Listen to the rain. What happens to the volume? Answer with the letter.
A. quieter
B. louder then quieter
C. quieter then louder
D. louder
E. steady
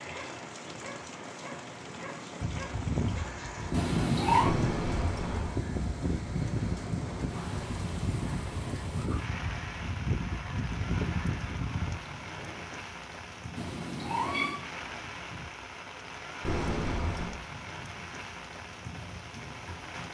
E.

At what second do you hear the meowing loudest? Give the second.
4 s.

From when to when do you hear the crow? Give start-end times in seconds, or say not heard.
2.4-12.8.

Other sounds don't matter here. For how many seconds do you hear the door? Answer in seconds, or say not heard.
2 s.